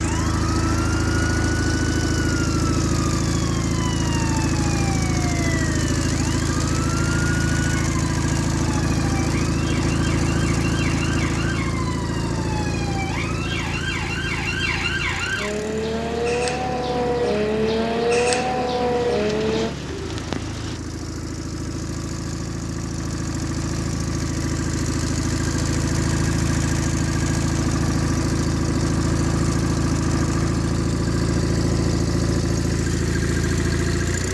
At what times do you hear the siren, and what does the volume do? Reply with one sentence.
You can hear the siren from 0.1 to 19.8 s, getting louder.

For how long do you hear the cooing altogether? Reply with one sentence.
You can hear the cooing for 2 seconds altogether.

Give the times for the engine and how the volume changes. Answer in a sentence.
The engine can be heard from 0.0 to 34.2 s, getting quieter then louder.